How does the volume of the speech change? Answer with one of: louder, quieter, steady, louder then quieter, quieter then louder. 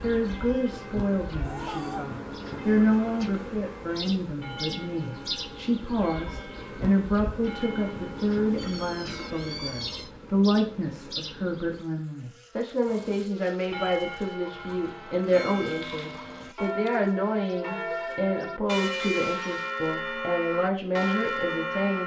steady.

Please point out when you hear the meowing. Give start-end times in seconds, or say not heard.
1.4-2.1, 8.6-10.1, 15.7-16.9.